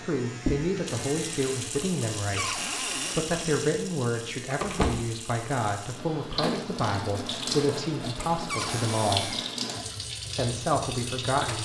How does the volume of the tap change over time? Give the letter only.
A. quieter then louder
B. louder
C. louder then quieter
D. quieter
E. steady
E.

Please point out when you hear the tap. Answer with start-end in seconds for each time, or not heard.
0.0-11.6.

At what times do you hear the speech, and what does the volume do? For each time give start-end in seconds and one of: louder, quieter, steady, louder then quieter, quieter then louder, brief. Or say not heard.
0.1-9.3 steady
10.3-11.6 brief.